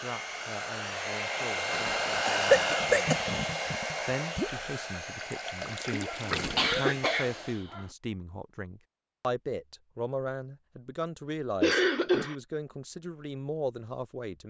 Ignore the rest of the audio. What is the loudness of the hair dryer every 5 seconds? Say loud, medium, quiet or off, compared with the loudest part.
loud, medium, off.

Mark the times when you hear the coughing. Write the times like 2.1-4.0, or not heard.
2.2-3.1, 6.0-7.8, 11.6-12.3.